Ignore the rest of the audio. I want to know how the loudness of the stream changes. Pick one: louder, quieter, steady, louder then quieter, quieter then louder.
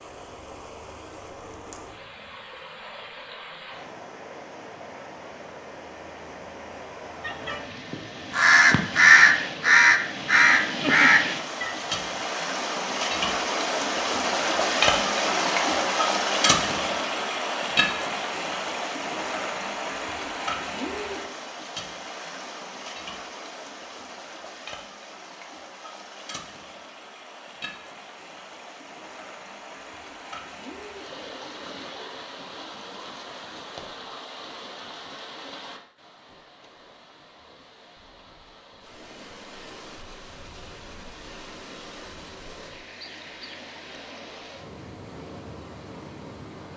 louder then quieter.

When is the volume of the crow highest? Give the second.
9 s.